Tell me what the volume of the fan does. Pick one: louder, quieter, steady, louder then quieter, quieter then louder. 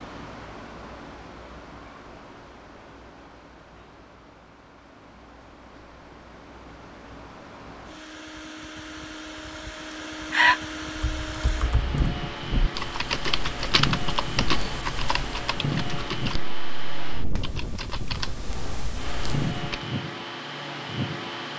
louder.